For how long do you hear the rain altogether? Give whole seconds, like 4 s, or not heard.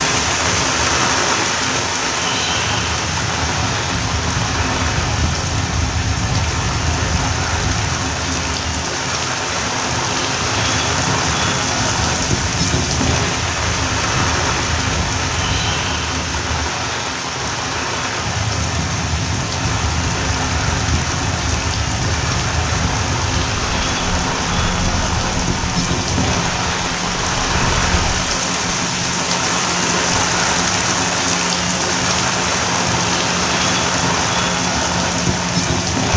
36 s.